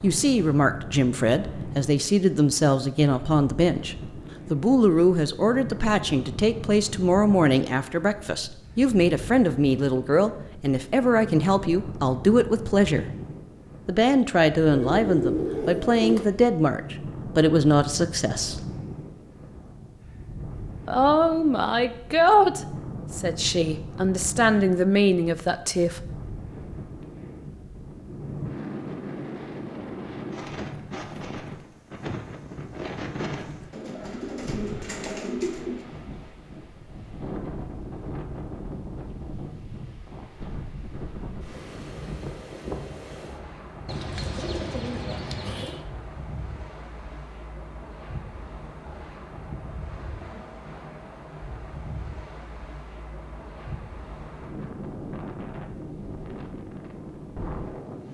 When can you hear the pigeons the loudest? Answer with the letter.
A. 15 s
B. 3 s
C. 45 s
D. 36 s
A.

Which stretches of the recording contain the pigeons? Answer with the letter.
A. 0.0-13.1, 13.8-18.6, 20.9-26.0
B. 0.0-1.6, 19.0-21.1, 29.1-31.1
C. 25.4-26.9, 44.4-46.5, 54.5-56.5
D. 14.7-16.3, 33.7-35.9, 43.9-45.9
D.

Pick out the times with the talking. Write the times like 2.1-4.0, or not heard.
0.0-13.1, 13.8-18.6, 20.9-26.0.